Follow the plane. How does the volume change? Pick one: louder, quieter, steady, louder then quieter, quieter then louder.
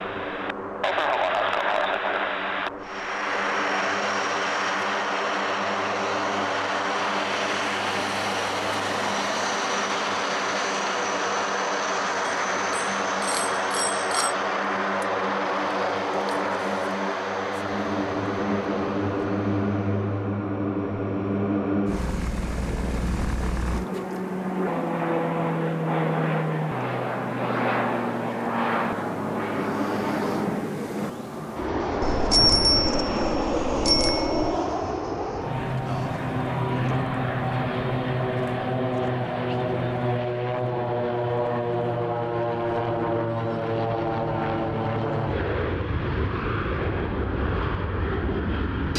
steady.